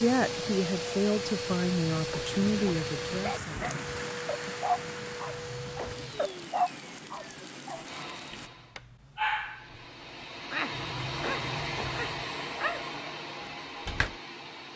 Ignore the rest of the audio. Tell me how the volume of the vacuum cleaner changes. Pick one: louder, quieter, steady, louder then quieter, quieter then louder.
quieter then louder.